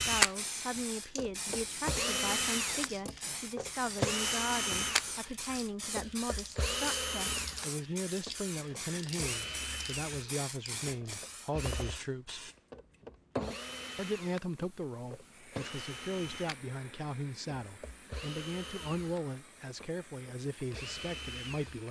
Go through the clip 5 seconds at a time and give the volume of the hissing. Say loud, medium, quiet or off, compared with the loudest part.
loud, loud, loud, quiet, quiet.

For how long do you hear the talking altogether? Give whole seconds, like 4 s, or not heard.
20 s.